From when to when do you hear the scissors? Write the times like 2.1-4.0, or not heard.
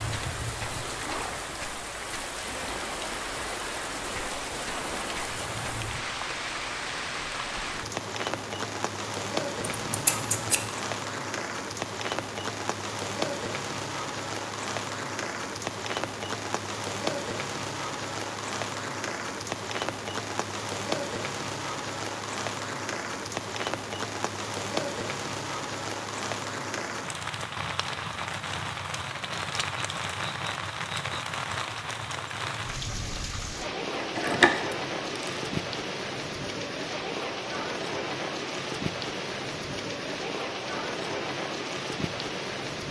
9.6-10.7, 33.9-35.4.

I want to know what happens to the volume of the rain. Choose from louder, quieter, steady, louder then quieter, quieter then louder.
steady.